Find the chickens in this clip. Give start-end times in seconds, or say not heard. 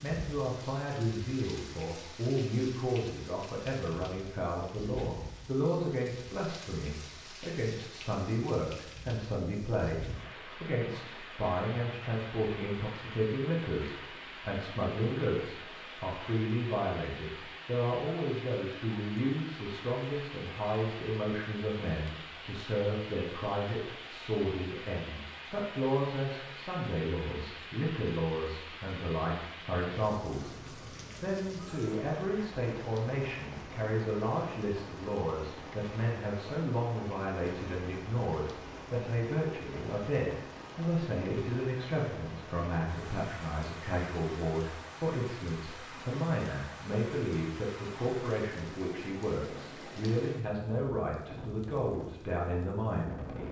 not heard.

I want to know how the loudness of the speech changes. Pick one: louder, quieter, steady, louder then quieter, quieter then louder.
steady.